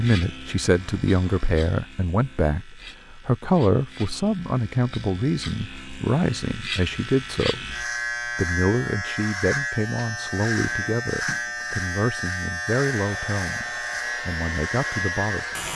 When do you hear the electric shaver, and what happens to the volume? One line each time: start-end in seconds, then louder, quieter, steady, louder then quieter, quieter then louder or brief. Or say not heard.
0.0-15.7 louder.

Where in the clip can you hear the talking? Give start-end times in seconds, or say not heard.
0.0-15.6.